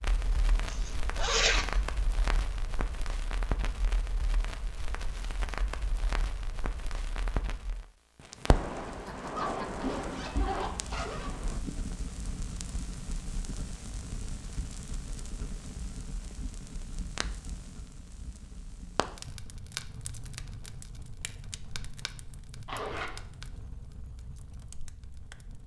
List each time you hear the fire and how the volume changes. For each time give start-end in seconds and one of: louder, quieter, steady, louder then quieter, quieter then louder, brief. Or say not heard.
0.0-25.6 quieter.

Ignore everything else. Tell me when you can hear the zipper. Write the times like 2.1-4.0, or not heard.
0.7-1.8, 9.3-11.3, 22.6-23.2.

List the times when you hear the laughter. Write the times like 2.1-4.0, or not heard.
8.8-9.9.